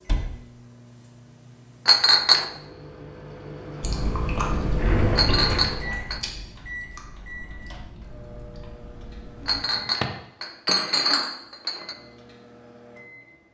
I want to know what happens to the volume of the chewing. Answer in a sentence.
The volume of the chewing goes down.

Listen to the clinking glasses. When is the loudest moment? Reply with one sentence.
The volume of the clinking glasses peaks at 2 seconds.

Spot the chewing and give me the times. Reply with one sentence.
You can hear the chewing from 3.8 to 9.7 s.